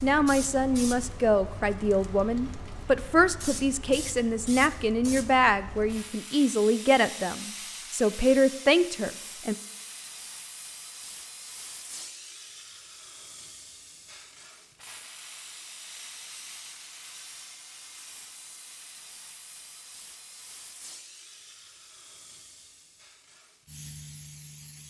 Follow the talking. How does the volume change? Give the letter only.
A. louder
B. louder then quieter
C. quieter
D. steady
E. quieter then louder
D.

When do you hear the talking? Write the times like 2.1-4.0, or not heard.
0.0-9.6.